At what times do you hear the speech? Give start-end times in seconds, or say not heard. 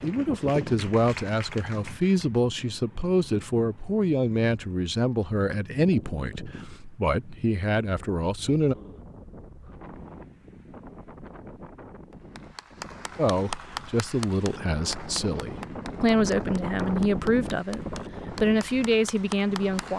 0.0-8.8, 13.2-19.9.